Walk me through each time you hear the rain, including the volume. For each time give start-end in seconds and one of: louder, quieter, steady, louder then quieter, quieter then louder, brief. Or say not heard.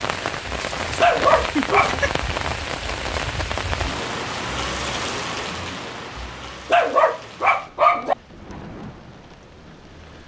0.0-10.2 quieter.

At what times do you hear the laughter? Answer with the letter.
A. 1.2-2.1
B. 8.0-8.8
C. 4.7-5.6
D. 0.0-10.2
A.